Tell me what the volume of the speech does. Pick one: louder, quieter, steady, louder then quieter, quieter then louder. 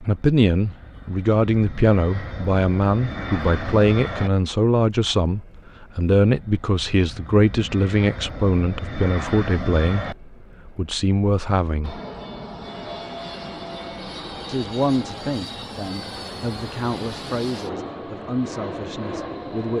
quieter.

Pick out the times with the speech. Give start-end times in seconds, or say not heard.
0.0-12.0, 14.4-19.7.